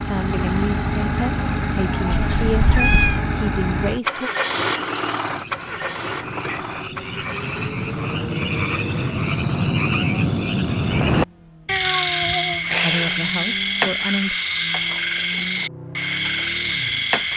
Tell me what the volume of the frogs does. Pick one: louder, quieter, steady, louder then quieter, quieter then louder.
louder.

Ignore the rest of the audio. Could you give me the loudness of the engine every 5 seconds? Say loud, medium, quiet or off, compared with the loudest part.
loud, medium, quiet, quiet.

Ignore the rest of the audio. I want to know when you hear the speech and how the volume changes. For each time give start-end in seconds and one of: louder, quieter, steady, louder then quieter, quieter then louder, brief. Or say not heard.
0.1-4.3 steady
12.8-14.3 brief.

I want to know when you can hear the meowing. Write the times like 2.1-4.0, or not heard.
2.1-3.2, 11.7-13.3.